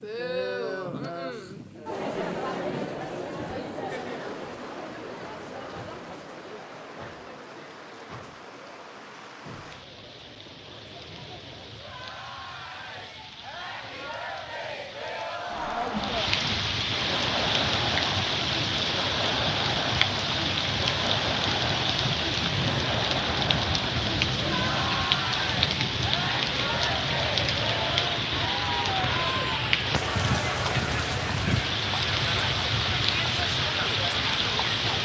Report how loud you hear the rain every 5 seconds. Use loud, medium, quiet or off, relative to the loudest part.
quiet, quiet, quiet, loud, loud, loud, loud.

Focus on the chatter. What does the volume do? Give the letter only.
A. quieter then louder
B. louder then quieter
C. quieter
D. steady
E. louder
A.